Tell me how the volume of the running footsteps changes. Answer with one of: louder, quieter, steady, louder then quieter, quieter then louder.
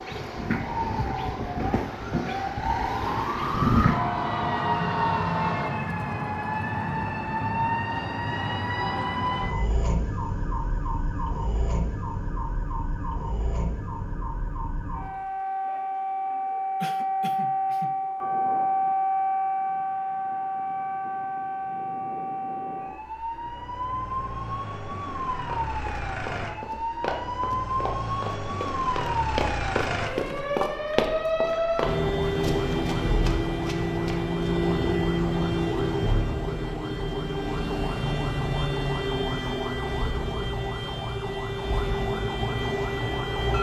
louder then quieter.